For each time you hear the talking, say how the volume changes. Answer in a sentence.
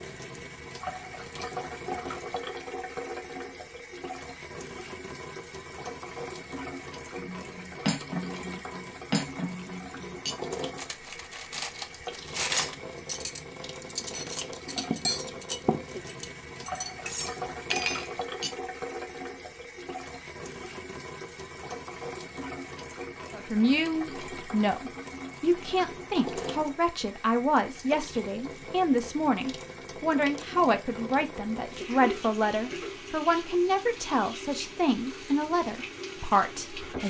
You can hear the talking from 23.3 to 37.0 s, at a steady volume.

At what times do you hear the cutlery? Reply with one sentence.
The cutlery can be heard from 7.2 to 18.6 s.